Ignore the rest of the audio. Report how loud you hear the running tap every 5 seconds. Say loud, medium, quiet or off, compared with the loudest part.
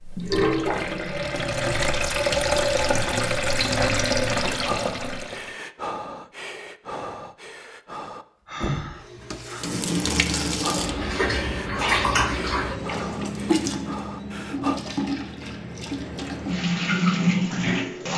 loud, medium, loud, loud.